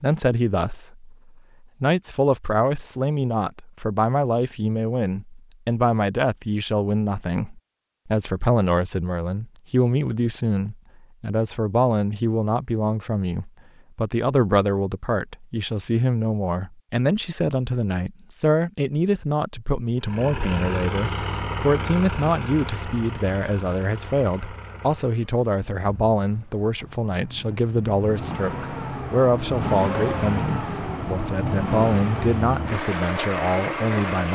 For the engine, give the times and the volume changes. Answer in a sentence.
You can hear the engine from 20.0 to 34.3 s, getting quieter then louder.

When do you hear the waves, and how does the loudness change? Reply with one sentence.
You can't hear the waves here.